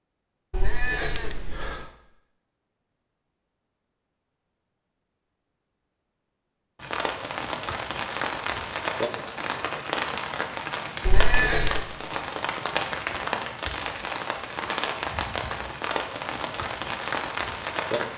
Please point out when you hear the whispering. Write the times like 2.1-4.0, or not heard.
not heard.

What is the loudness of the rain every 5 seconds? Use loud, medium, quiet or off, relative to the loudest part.
off, loud, loud, loud.